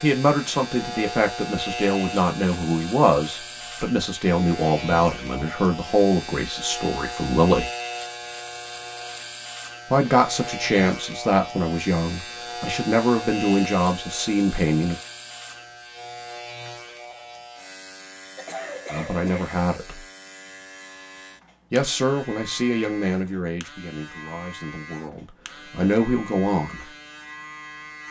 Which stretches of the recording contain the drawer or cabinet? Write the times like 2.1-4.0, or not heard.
not heard.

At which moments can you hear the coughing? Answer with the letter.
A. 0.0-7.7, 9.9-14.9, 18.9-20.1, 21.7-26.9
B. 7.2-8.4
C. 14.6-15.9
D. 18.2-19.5
D.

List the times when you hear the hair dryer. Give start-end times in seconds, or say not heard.
not heard.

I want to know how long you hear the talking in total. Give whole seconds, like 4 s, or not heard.
19 s.